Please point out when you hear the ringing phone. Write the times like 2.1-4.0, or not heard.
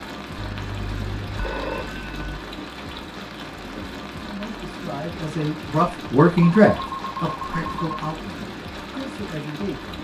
0.3-2.4, 6.3-7.8.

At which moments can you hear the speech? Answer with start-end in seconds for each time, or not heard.
4.2-9.9.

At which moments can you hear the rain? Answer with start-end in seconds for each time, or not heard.
0.0-9.9.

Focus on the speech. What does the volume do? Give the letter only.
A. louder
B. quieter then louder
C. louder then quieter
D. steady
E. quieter
C.